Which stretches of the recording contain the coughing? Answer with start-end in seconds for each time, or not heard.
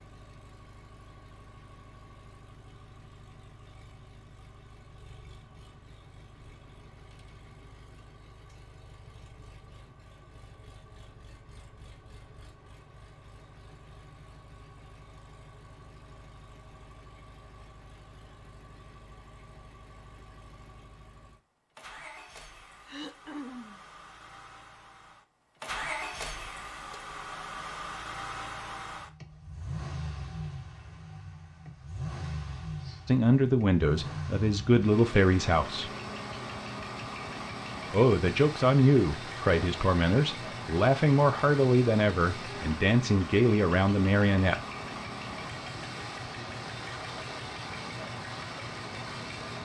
22.9-23.8.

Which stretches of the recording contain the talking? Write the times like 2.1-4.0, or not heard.
33.0-35.9, 37.9-44.6.